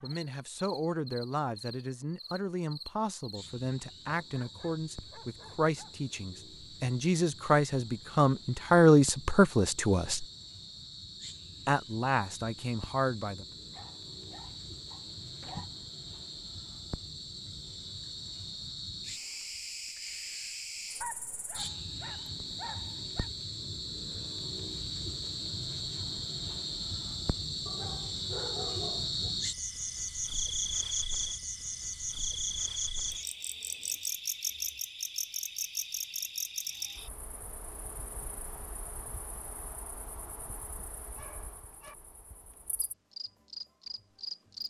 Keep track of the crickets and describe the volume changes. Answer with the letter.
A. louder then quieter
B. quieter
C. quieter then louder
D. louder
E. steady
A.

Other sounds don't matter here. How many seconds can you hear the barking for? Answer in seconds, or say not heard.
9 s.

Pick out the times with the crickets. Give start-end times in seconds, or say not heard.
0.0-44.6.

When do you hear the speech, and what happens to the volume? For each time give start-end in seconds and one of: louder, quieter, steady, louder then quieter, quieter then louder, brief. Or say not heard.
0.0-10.2 louder
11.7-13.4 brief.